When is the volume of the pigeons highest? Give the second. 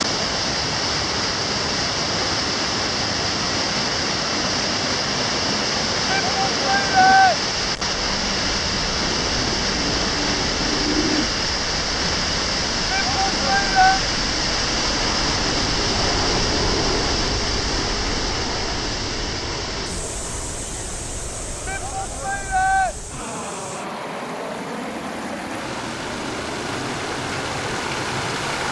11 s.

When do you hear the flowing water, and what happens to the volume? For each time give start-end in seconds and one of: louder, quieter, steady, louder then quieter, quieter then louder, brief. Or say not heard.
0.0-28.6 quieter.